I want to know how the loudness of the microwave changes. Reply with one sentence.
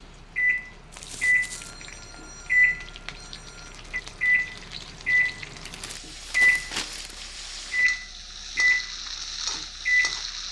The loudness of the microwave stays about the same.